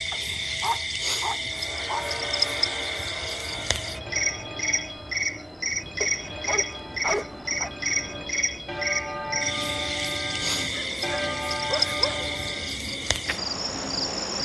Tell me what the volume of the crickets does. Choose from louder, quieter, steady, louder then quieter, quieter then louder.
steady.